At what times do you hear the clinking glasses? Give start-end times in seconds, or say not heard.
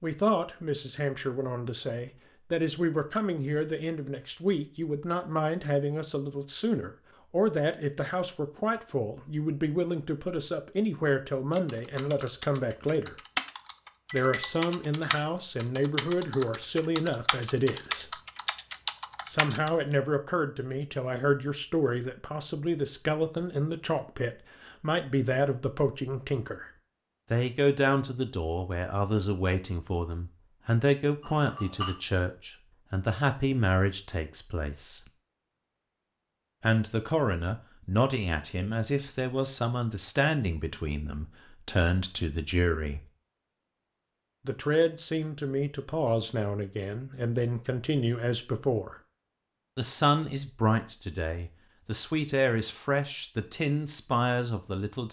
14.1-14.6, 31.2-31.9.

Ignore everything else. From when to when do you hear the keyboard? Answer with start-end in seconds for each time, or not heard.
11.5-19.7.